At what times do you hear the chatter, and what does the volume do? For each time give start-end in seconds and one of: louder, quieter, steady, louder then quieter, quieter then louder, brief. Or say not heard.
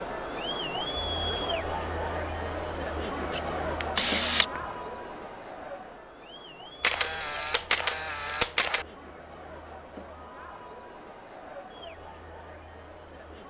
0.0-13.4 quieter.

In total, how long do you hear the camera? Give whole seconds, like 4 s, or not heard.
3 s.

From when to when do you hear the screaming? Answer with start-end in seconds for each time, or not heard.
not heard.